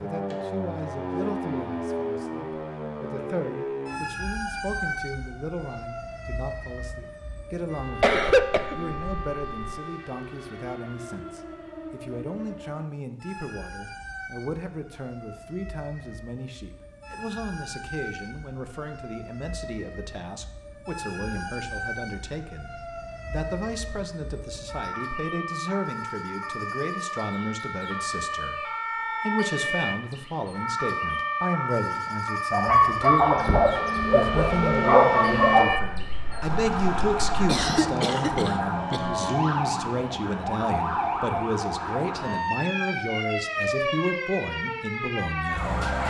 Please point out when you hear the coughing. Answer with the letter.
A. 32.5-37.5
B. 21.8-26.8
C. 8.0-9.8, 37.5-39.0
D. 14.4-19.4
C.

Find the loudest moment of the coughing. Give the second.
8 s.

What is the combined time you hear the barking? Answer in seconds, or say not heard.
5 s.